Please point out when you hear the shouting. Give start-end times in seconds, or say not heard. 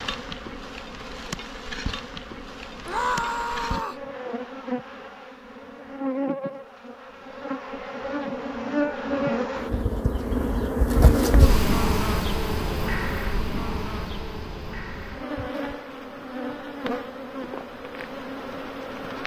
2.9-4.0.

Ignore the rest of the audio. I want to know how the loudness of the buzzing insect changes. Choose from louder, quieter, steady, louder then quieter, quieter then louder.
louder then quieter.